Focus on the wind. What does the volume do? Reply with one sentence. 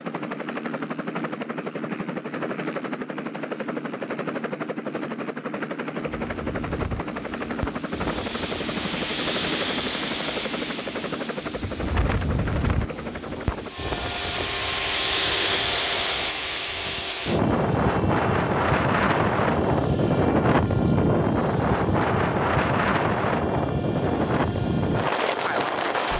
The loudness of the wind goes up.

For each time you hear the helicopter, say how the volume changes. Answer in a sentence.
The helicopter can be heard from 0.0 to 26.1 s, getting quieter.